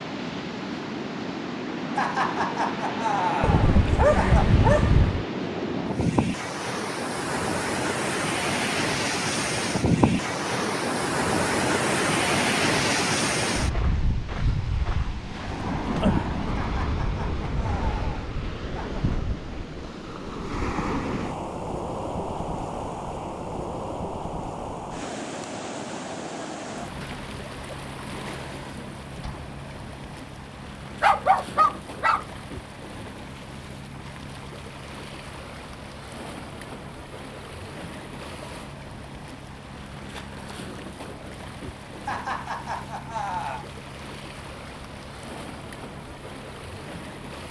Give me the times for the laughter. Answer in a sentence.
The laughter can be heard from 1.9 to 4.5 s, from 16.6 to 19.0 s and from 42.0 to 43.6 s.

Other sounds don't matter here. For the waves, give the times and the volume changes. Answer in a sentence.
You can hear the waves from 0.0 to 47.4 s, getting quieter.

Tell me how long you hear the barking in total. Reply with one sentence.
You can hear the barking for 3 seconds altogether.